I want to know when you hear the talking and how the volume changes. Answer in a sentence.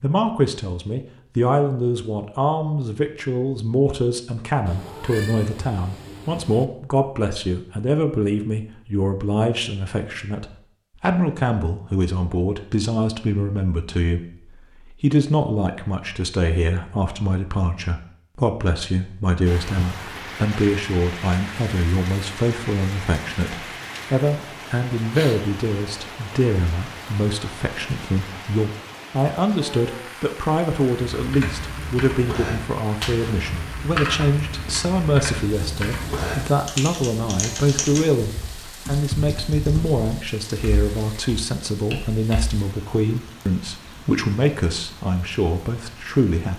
The talking can be heard from 0.0 to 46.5 s, at a steady volume.